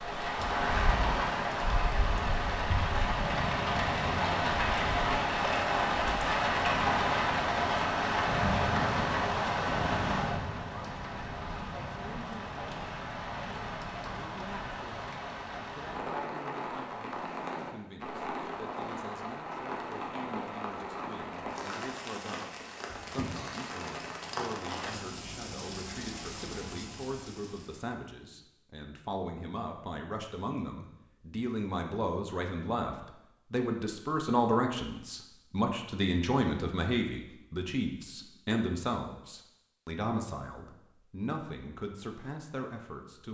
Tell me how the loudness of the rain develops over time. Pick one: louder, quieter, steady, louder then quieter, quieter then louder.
quieter.